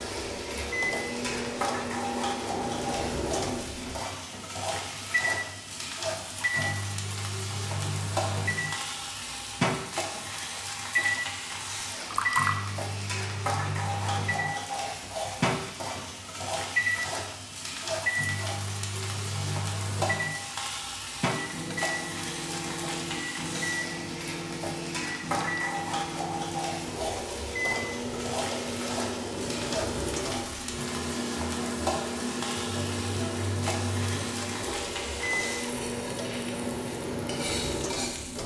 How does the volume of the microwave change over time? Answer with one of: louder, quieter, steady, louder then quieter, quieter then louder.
steady.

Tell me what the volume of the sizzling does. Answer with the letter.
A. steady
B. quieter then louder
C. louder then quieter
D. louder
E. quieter
A.